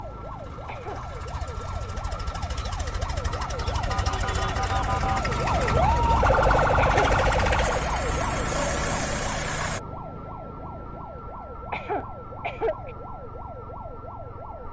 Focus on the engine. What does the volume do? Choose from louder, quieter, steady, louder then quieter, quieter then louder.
louder.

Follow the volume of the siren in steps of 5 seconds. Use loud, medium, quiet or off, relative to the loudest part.
medium, loud, quiet.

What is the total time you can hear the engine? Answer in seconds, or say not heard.
10 s.